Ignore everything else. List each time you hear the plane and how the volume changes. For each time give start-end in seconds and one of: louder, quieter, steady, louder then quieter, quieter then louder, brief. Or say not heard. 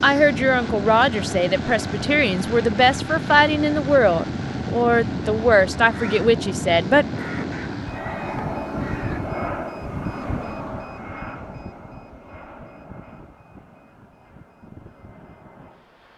0.0-16.1 quieter.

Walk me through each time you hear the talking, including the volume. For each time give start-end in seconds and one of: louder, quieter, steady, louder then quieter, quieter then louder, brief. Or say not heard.
0.0-7.0 steady.